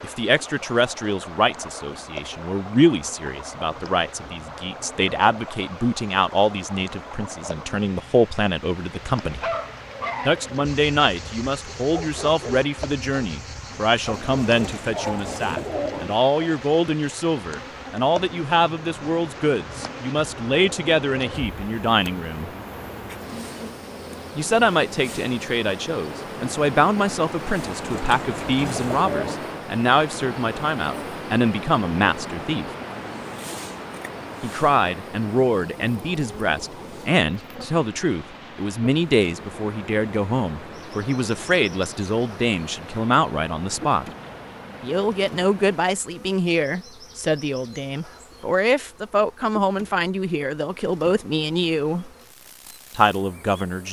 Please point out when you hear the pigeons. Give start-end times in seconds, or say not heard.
14.1-16.1, 27.6-29.5.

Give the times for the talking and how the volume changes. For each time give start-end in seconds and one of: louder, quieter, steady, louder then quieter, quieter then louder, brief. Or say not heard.
0.0-9.4 steady
10.2-22.5 steady
24.4-32.7 steady
34.4-44.0 steady
44.8-52.1 steady
52.9-53.8 brief.